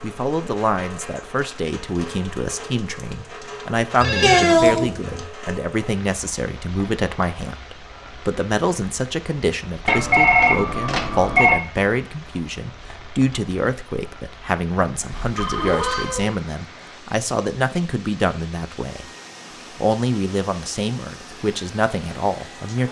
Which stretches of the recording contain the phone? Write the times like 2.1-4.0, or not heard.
4.0-5.2, 9.8-11.6, 15.3-16.2.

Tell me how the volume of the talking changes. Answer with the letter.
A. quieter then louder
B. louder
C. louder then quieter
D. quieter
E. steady
E.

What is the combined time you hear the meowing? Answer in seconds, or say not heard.
2 s.